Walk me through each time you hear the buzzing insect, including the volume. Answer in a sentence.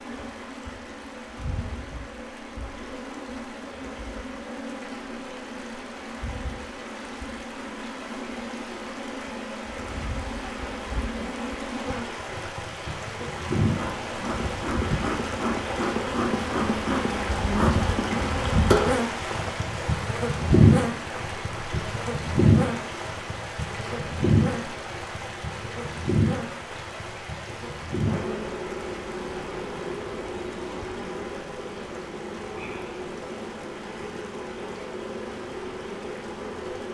The buzzing insect can be heard from 0.0 to 36.8 s, getting louder then quieter.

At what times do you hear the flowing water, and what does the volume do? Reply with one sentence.
You can hear the flowing water from 0.0 to 36.8 s, getting louder then quieter.